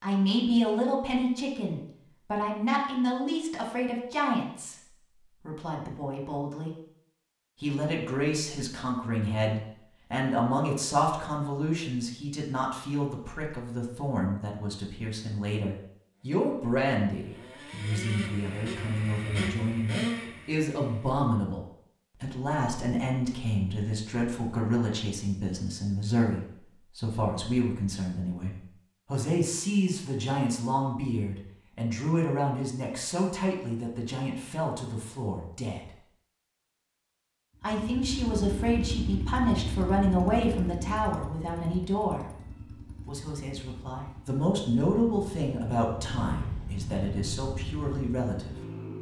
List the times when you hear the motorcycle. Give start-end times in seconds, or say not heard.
16.1-21.2, 37.5-48.9.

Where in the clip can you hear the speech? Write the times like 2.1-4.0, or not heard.
0.0-6.7, 7.6-35.9, 37.6-48.5.